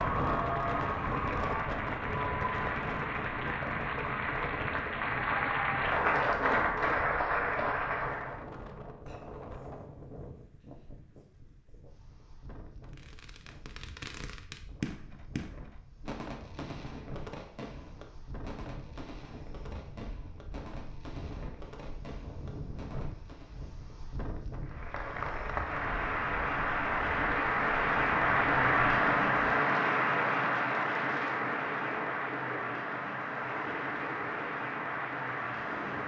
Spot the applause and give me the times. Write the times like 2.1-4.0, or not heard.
0.0-8.4, 24.6-36.0.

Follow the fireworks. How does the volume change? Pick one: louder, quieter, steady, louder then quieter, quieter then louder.
quieter.